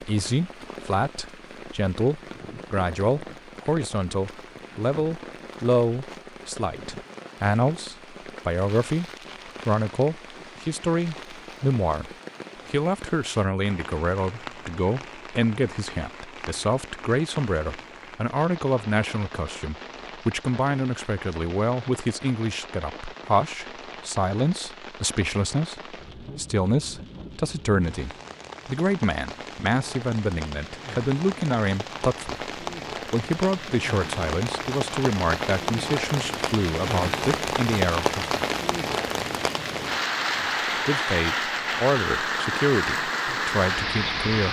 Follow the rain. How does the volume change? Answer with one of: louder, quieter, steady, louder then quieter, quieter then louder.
louder.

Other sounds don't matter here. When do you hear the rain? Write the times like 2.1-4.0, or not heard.
0.0-44.4.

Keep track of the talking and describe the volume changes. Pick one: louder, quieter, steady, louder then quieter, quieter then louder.
steady.